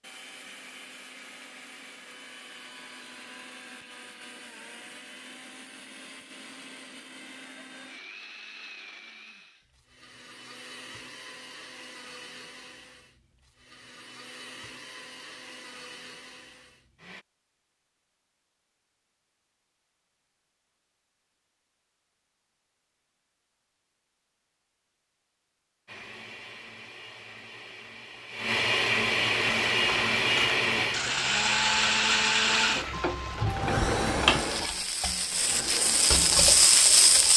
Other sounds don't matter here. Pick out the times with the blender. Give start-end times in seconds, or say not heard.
0.0-17.2, 25.9-37.3.